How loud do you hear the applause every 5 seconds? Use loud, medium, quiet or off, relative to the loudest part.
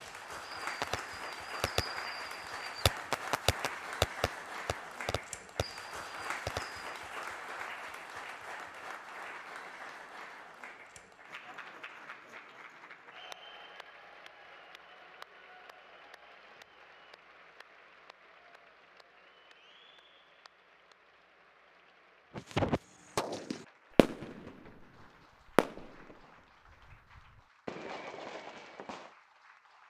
loud, loud, medium, quiet, quiet, quiet.